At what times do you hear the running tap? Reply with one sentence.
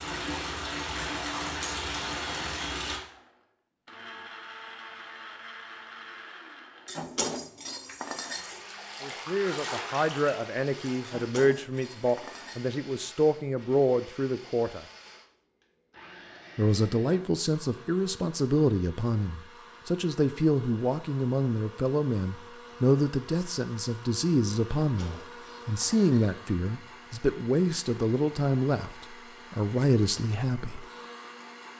The running tap can be heard from 0.0 to 3.0 s and from 8.2 to 11.3 s.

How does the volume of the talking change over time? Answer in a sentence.
The volume of the talking stays about the same.